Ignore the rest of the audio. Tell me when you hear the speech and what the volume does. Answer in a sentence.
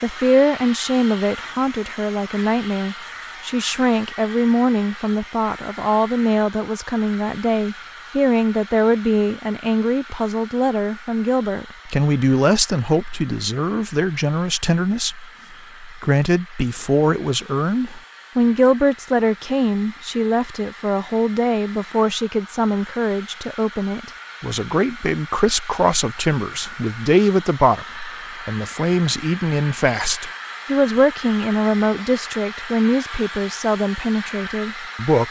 The speech can be heard from 0.0 to 35.2 s, at a steady volume.